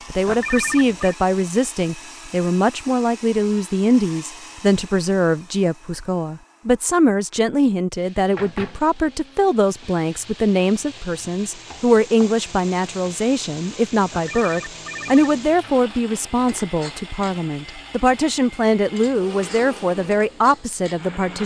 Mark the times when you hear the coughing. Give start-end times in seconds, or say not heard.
not heard.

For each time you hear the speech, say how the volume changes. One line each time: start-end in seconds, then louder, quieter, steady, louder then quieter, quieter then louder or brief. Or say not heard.
0.1-21.4 steady.